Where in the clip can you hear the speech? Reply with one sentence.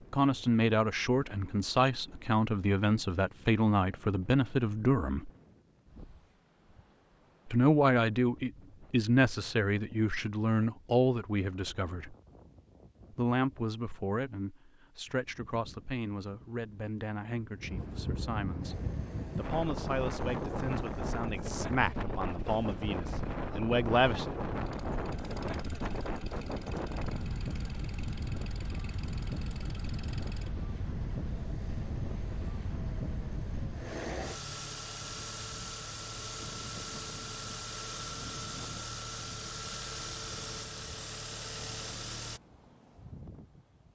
The speech can be heard from 0.1 to 5.3 s, from 7.5 to 12.2 s and from 13.1 to 24.2 s.